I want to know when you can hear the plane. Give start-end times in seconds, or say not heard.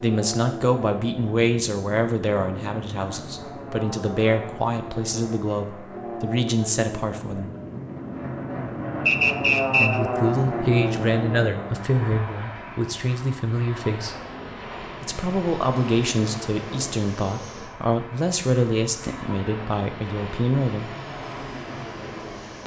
0.0-22.6.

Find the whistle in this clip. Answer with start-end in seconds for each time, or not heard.
9.1-10.0.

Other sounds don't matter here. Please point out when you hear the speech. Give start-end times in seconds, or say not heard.
0.0-7.5, 9.8-14.2, 15.0-20.9.